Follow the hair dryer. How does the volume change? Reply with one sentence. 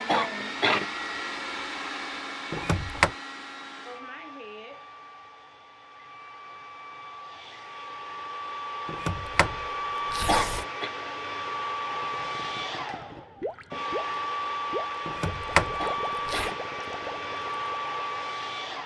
The volume of the hair dryer goes down, then up.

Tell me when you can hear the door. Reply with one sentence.
You can hear the door from 2.5 to 3.1 s, from 8.8 to 10.7 s and from 15.1 to 16.5 s.